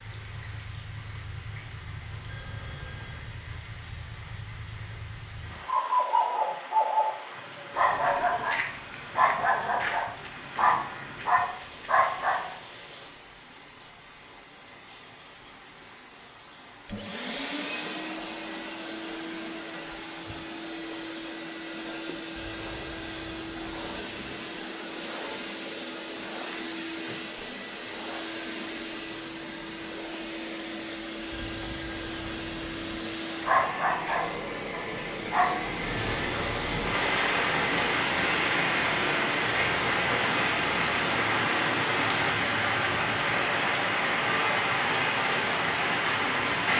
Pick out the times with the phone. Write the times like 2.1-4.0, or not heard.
2.2-3.4, 22.4-24.4, 31.3-33.1.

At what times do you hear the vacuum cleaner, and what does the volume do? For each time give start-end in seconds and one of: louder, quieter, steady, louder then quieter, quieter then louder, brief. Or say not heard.
16.4-42.1 steady.